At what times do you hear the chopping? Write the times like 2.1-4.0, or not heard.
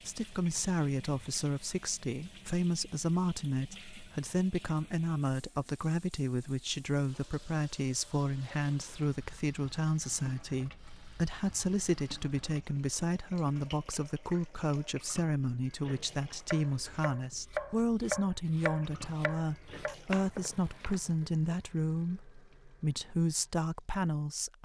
16.4-21.0.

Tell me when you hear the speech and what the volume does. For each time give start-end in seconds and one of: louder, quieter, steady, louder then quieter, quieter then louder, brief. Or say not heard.
0.0-24.6 steady.